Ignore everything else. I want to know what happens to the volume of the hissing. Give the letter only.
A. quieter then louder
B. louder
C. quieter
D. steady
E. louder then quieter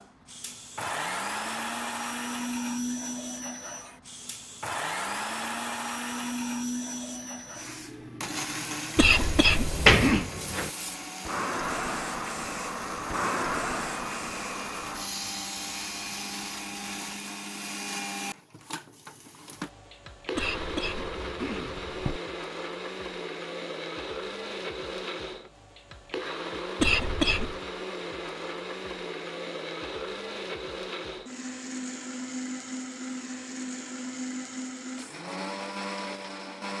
B.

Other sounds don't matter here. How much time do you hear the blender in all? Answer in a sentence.
You can hear the blender for 37 seconds altogether.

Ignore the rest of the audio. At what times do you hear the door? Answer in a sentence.
You can hear the door from 9.4 to 10.7 s.